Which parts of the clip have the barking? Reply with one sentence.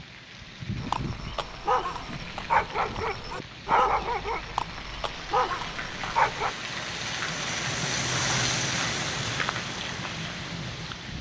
You can hear the barking from 0.8 to 6.5 s.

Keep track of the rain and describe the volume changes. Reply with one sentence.
The volume of the rain goes up.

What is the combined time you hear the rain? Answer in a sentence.
You can hear the rain for 11 seconds altogether.